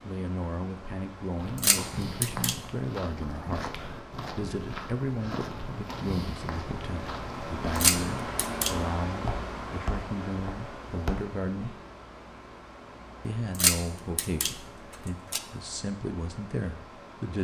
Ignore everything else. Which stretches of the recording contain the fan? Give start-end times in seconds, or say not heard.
0.0-17.4.